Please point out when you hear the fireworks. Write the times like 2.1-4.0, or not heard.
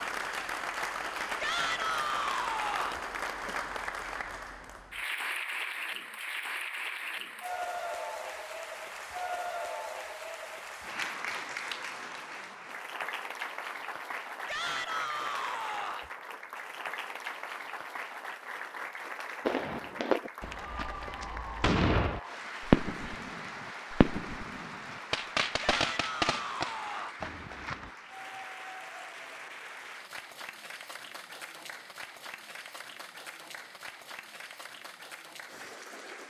19.4-27.9.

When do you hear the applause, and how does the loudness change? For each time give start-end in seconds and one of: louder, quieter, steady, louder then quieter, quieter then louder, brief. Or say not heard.
0.0-36.2 quieter.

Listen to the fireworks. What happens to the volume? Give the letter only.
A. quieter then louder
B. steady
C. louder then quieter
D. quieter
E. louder
C.